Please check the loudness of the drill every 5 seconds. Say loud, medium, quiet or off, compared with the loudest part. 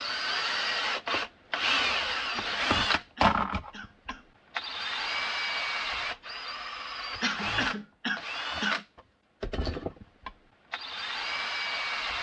loud, medium, medium.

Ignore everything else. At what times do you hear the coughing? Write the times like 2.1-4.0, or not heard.
2.3-4.2, 7.2-8.8.